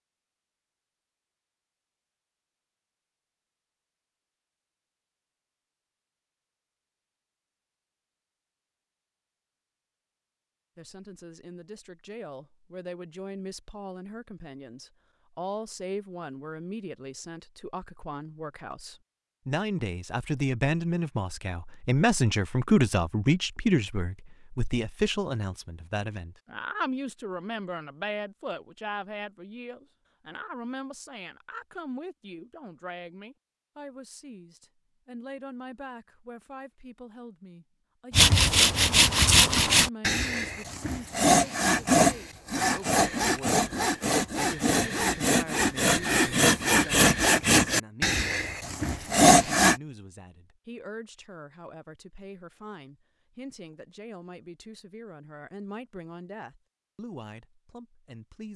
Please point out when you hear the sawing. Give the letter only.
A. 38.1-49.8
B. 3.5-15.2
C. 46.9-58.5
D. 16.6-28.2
A.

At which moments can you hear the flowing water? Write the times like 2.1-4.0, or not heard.
not heard.